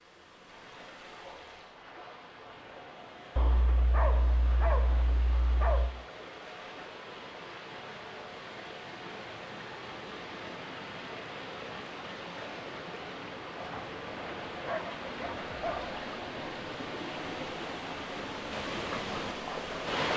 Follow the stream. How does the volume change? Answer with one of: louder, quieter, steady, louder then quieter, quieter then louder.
louder.